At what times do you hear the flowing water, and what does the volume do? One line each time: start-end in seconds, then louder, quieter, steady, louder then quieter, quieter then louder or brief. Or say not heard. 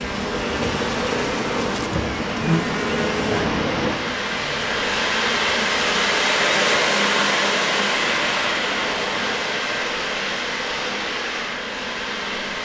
0.0-12.6 louder then quieter.